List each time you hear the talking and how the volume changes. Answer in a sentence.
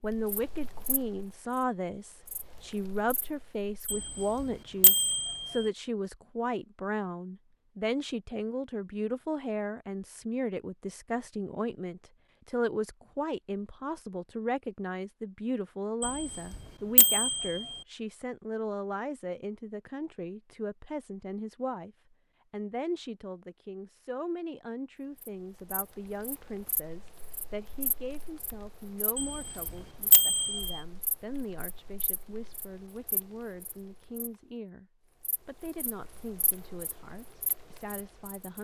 You can hear the talking from 0.0 to 38.5 s, getting quieter.